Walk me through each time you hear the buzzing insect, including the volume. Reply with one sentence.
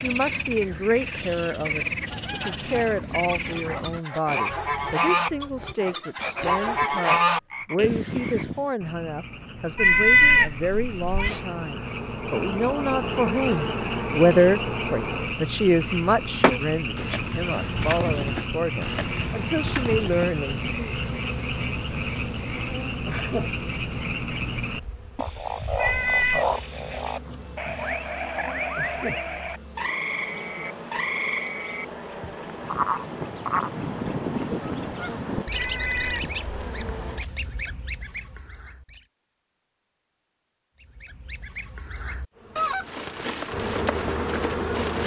You can hear the buzzing insect from 11.2 to 37.2 s, getting quieter; and briefly from 42.3 to 45.0 s.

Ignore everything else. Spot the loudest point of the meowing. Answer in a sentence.
The volume of the meowing peaks at 10 seconds.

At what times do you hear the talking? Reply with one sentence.
You can hear the talking from 0.0 to 20.9 s.